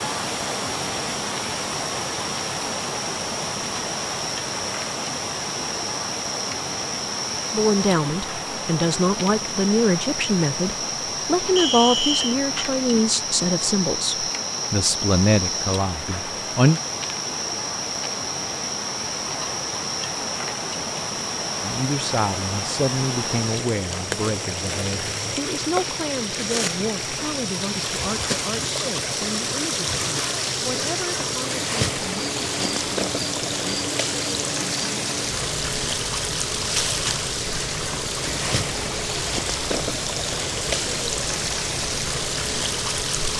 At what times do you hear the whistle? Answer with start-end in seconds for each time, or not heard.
11.6-12.3.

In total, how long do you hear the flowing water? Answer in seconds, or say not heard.
43 s.